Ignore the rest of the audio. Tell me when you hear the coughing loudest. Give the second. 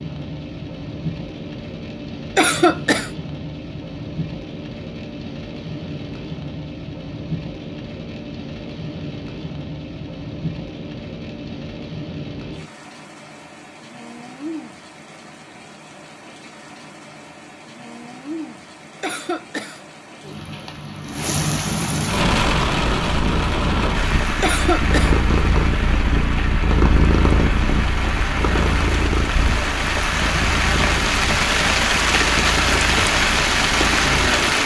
3 s.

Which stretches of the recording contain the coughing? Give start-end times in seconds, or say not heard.
2.4-3.1, 19.0-19.8, 24.4-25.1.